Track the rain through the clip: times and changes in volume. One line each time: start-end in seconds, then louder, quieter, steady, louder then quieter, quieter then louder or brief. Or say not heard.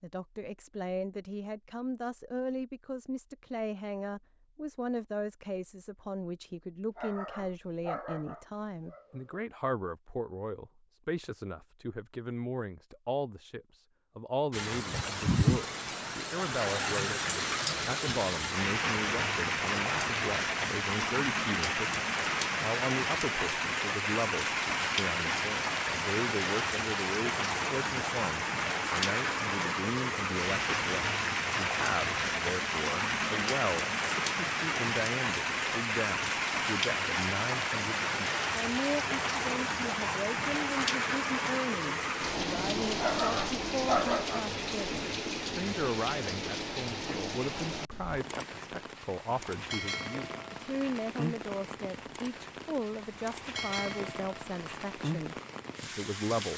14.5-56.5 quieter.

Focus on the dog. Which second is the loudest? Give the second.
44 s.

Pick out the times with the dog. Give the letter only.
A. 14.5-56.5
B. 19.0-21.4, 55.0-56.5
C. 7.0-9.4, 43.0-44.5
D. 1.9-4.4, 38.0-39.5
C.